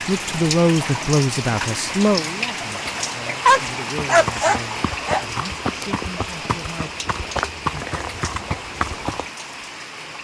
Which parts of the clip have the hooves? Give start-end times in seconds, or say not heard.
4.0-9.3.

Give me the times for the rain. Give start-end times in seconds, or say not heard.
0.0-10.1.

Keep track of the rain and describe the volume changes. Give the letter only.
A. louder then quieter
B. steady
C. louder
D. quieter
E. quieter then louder
D.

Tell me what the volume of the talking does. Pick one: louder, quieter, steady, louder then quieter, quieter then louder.
quieter.